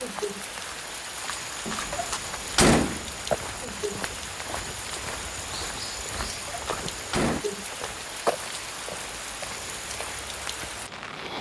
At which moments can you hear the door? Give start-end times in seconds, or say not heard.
1.6-3.0, 6.2-7.5.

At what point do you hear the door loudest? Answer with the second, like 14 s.
3 s.